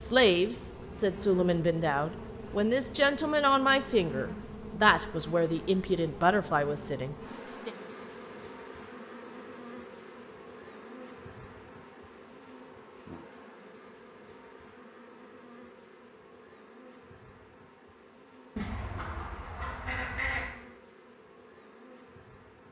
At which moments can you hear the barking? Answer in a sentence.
You can't hear the barking here.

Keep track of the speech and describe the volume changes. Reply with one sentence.
The volume of the speech stays about the same.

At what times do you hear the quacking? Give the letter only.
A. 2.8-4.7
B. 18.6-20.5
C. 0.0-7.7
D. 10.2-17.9
B.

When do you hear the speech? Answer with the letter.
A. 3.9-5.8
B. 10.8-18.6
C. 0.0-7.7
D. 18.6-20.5
C.